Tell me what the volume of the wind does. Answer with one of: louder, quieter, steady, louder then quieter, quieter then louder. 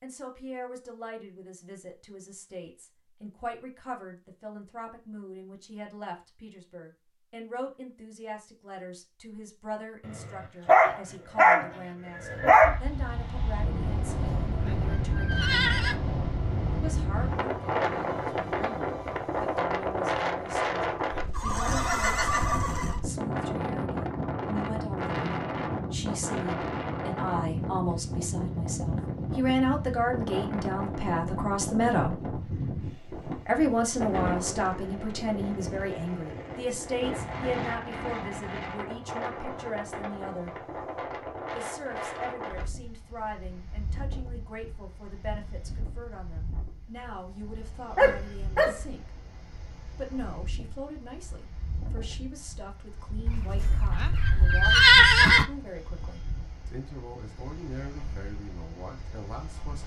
quieter.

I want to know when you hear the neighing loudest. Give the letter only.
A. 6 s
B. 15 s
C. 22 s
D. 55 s
D.